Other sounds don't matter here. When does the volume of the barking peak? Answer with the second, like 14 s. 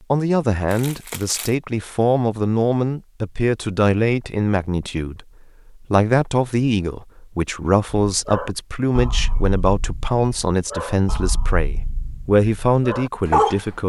13 s.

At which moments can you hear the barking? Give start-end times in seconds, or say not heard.
8.1-13.6.